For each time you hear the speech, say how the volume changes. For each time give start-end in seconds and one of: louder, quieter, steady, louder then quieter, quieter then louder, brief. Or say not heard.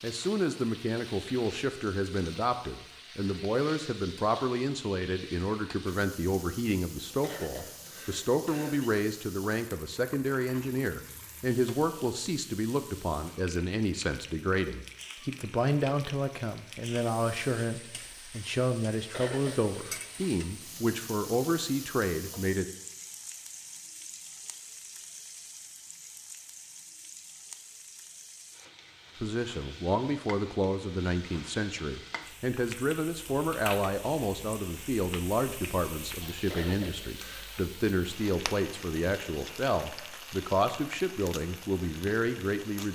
0.0-22.6 steady
29.2-42.9 steady.